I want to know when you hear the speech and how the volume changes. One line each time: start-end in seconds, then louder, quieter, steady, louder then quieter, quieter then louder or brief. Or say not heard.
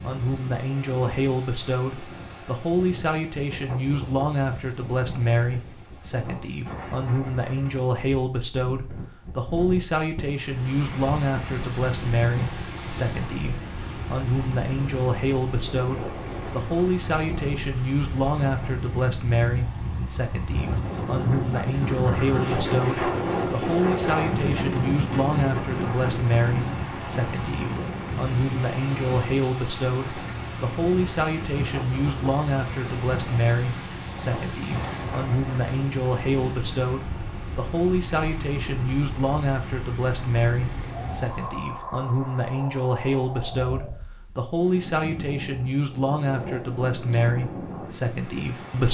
0.0-48.9 steady.